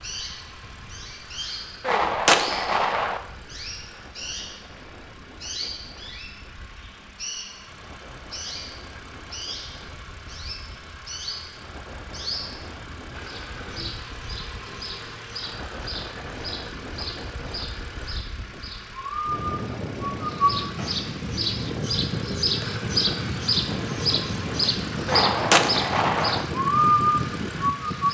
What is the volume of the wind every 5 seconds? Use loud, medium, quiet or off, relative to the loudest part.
quiet, quiet, quiet, medium, loud, loud.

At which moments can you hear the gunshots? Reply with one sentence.
The gunshots can be heard from 1.9 to 3.2 s and from 25.1 to 26.4 s.